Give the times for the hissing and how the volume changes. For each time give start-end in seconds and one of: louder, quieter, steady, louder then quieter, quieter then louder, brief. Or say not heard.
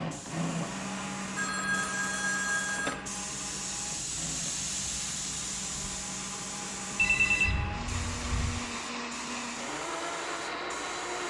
0.0-11.2 louder then quieter.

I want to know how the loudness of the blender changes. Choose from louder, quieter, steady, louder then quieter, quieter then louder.
quieter then louder.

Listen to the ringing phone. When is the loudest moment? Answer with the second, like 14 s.
7 s.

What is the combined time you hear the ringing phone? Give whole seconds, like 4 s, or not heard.
3 s.